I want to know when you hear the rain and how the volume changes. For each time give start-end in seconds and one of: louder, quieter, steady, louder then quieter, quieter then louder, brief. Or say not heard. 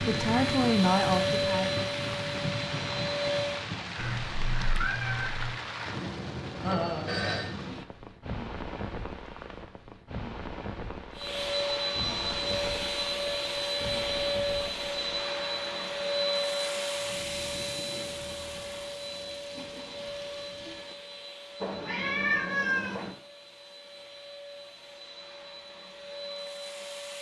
0.0-20.9 quieter.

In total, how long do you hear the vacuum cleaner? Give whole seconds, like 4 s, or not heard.
20 s.